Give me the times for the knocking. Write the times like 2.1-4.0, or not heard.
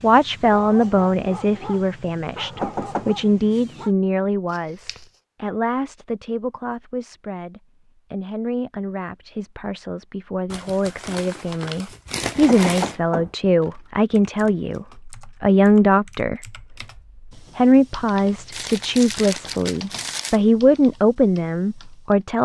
2.4-3.0, 12.2-13.3.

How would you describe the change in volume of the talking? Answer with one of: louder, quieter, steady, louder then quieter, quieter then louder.
quieter then louder.